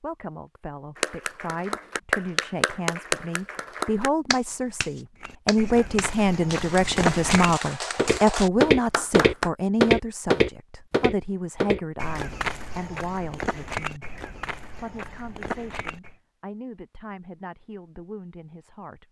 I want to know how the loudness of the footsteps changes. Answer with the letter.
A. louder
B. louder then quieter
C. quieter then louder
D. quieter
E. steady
B.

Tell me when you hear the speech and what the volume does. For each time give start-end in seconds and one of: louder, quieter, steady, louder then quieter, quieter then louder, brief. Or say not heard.
0.0-19.0 louder then quieter.